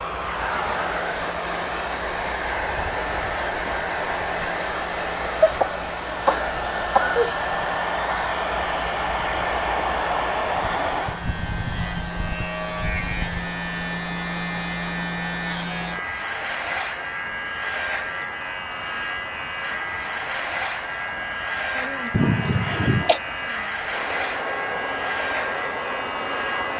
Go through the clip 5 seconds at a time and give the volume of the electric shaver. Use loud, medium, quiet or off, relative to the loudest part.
quiet, quiet, loud, loud, loud, loud.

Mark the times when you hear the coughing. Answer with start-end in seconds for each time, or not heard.
5.3-7.3, 22.1-23.2.